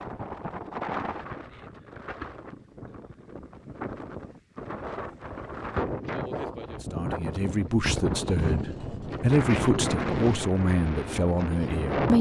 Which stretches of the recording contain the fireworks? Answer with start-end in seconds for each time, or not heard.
not heard.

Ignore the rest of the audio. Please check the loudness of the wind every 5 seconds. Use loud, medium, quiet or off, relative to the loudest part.
medium, loud, loud.